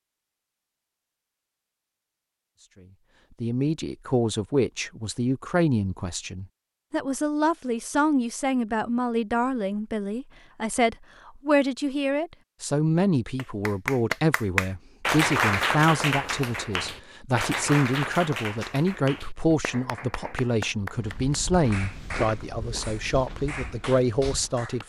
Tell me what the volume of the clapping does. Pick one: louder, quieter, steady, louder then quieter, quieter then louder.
quieter.